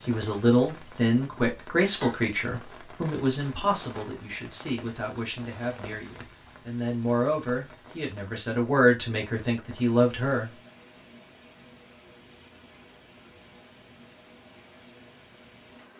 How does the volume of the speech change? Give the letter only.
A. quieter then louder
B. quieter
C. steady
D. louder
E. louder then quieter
A.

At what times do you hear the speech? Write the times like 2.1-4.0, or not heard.
0.1-10.5.